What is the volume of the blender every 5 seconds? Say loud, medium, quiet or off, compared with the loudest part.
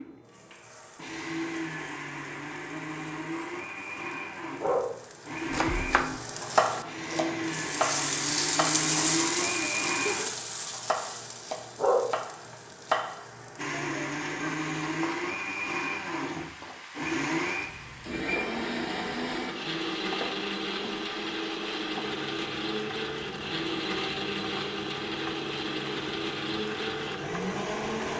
medium, loud, loud, loud, loud, loud.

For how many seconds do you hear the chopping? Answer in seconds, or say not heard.
9 s.